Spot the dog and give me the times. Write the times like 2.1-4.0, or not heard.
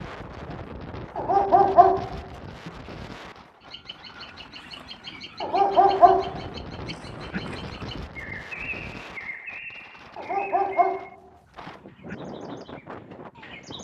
1.1-2.7, 5.4-7.4, 10.2-12.2.